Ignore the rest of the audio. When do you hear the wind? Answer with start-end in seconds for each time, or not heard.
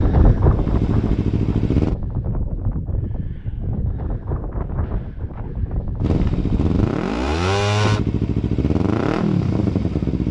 0.0-6.8.